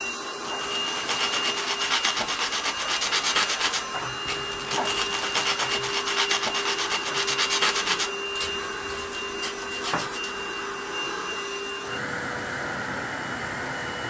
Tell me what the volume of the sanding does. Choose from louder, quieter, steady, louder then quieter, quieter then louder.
quieter.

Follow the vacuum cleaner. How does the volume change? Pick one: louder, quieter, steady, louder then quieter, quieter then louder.
steady.